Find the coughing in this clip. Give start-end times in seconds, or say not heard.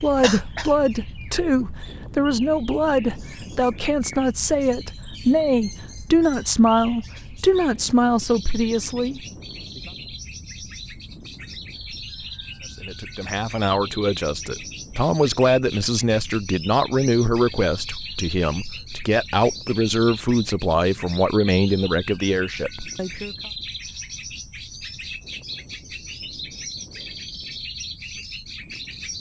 0.2-0.7.